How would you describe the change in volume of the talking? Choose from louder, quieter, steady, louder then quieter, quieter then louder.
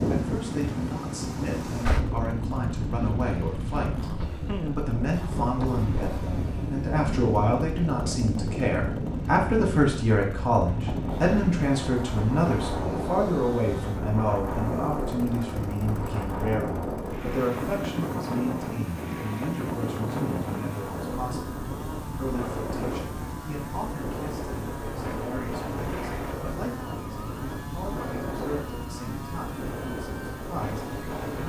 louder then quieter.